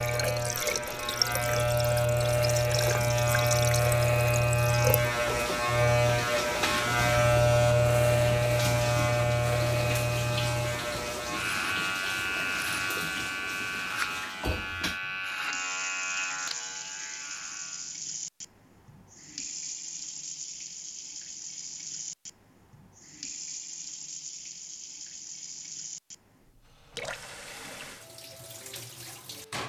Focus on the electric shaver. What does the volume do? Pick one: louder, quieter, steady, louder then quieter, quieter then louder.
quieter.